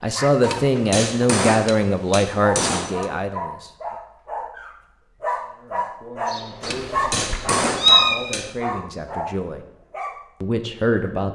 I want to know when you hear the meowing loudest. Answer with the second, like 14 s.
8 s.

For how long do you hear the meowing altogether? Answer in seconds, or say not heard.
2 s.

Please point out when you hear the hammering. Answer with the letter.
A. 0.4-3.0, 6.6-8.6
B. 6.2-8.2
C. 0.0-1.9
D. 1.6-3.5
A.